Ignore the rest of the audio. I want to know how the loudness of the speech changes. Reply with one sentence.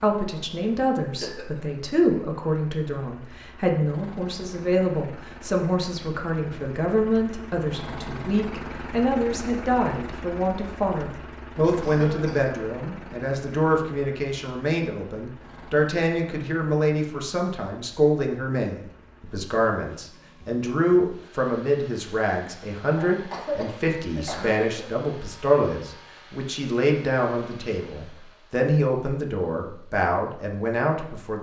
The loudness of the speech stays about the same.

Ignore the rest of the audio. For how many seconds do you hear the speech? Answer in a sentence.
The speech can be heard for 31 seconds in total.